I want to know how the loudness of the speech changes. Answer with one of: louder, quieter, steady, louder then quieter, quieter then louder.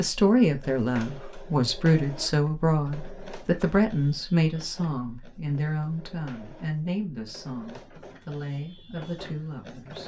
quieter.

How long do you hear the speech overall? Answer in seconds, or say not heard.
10 s.